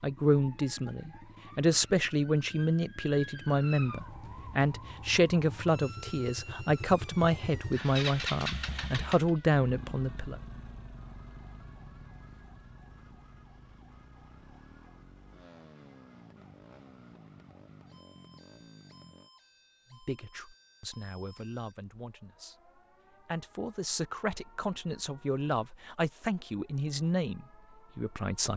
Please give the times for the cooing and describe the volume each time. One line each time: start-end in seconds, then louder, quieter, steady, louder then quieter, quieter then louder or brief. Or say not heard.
not heard.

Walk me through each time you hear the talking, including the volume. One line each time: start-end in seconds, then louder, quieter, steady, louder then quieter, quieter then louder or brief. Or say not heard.
0.0-10.3 steady
19.9-28.5 louder.